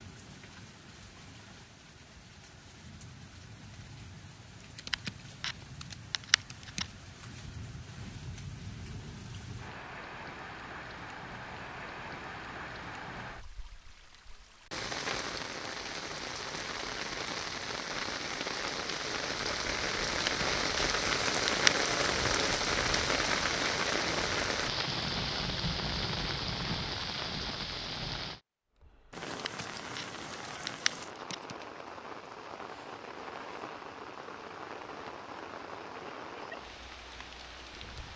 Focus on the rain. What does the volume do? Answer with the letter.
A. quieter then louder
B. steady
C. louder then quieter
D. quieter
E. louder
C.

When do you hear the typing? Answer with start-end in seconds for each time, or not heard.
4.6-7.0, 20.1-21.8, 29.3-31.6.